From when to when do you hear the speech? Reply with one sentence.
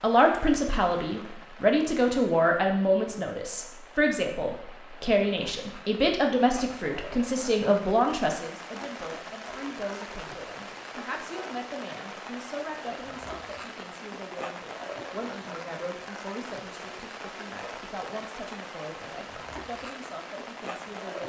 The speech can be heard from 0.0 to 21.2 s.